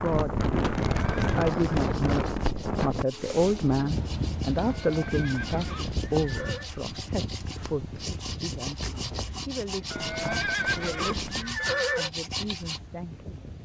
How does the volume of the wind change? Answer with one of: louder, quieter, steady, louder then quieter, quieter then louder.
quieter.